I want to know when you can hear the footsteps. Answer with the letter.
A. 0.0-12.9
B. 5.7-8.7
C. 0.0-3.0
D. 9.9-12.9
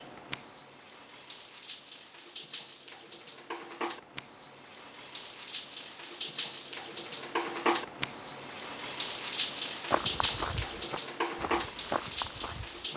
D.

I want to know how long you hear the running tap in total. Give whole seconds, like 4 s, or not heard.
13 s.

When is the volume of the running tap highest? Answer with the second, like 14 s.
10 s.